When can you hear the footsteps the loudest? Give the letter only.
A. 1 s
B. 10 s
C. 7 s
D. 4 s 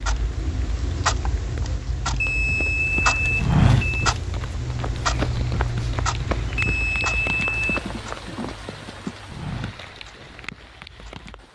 D.